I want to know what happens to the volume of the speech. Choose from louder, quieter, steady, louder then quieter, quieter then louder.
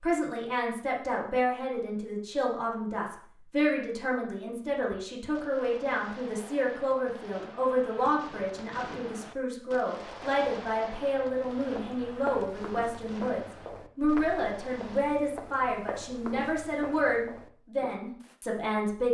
steady.